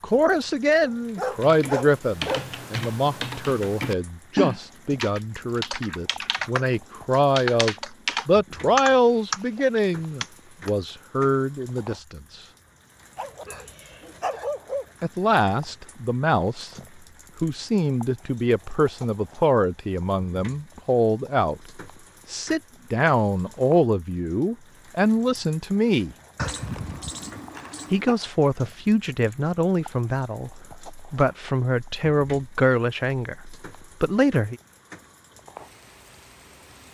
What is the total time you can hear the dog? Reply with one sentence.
The dog can be heard for 5 seconds in total.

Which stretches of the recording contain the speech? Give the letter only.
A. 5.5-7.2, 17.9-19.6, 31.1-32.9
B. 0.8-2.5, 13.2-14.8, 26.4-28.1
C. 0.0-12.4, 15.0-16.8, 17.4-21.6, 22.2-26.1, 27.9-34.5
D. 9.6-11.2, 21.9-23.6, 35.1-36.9
C.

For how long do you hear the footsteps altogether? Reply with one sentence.
You can't hear the footsteps here.